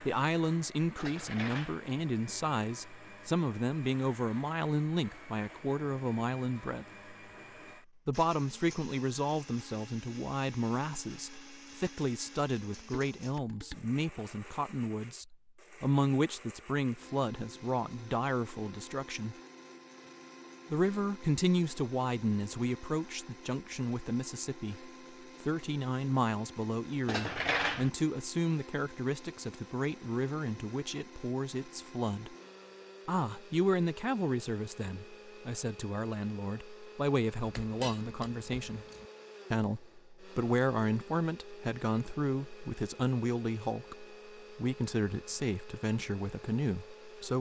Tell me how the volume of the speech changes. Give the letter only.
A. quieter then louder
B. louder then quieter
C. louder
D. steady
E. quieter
D.